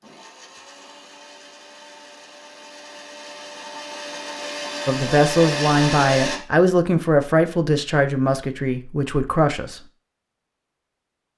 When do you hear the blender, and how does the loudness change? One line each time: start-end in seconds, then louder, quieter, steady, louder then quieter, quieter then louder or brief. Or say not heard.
0.0-6.4 louder.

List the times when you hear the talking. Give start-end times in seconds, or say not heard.
4.8-9.8.